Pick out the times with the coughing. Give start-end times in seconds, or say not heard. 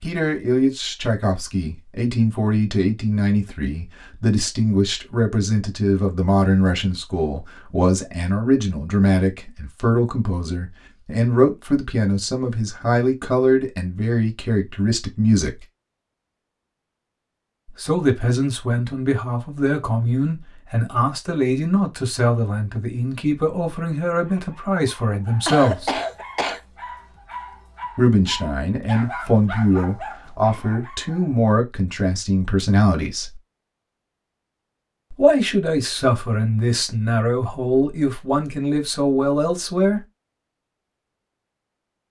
25.4-26.6.